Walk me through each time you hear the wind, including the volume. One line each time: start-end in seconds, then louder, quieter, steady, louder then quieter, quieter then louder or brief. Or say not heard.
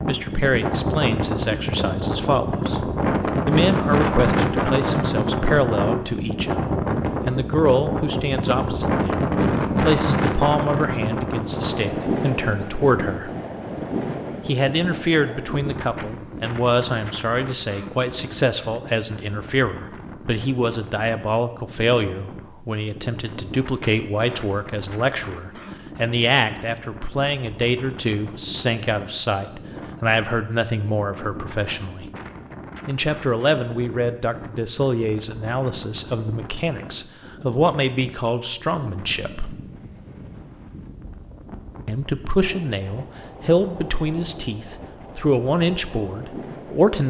0.0-47.0 quieter.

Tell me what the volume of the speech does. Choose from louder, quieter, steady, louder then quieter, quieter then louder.
steady.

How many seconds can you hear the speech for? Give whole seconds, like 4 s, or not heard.
43 s.